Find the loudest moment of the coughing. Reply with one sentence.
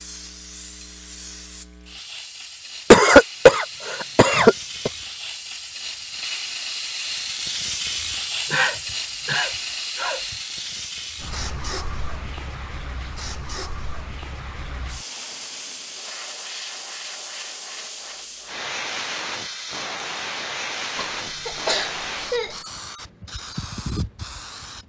The volume of the coughing peaks at 3 seconds.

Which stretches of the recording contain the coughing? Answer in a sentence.
You can hear the coughing from 2.9 to 4.9 s, from 8.5 to 10.3 s and from 20.9 to 22.6 s.